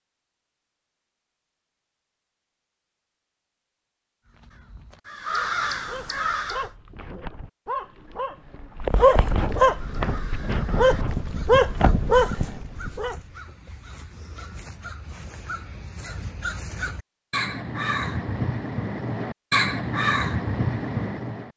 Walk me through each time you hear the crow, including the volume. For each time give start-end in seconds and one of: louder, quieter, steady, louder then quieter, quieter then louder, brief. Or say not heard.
4.3-6.7 brief
9.8-21.5 louder.